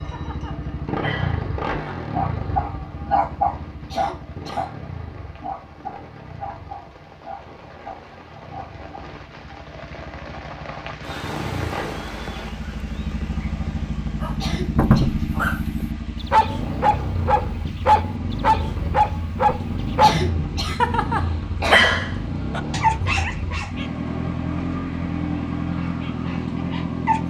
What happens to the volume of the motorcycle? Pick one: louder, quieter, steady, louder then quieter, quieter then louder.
quieter then louder.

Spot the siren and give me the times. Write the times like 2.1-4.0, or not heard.
not heard.